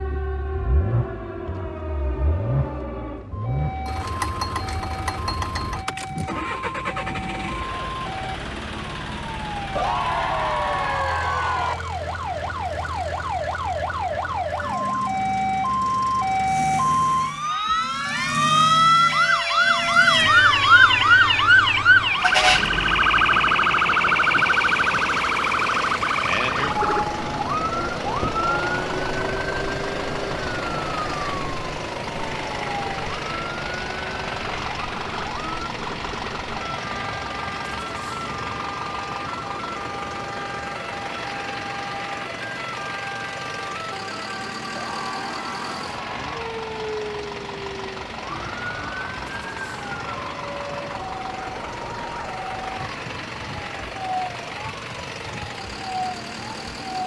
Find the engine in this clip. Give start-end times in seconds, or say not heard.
0.0-57.0.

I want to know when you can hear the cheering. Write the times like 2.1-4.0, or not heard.
9.8-11.8, 44.8-46.3.